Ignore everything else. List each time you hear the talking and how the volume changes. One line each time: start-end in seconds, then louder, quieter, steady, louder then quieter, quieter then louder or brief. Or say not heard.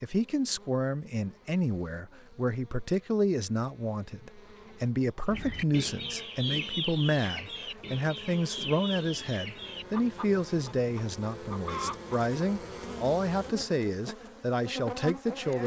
0.0-15.6 steady.